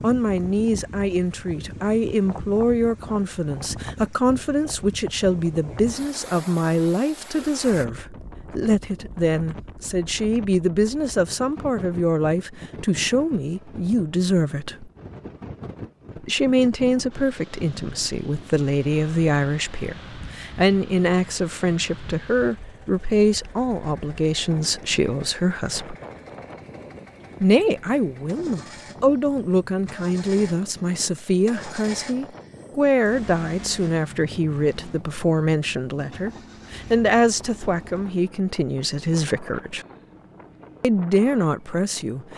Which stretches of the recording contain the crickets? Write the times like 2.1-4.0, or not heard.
not heard.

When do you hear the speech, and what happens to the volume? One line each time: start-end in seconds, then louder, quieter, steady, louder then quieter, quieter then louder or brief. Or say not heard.
0.0-14.9 steady
16.2-25.9 steady
27.4-39.9 steady
40.8-42.3 brief.